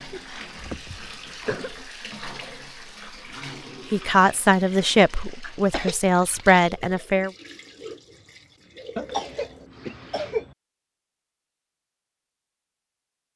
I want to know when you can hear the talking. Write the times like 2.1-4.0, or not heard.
3.9-7.3.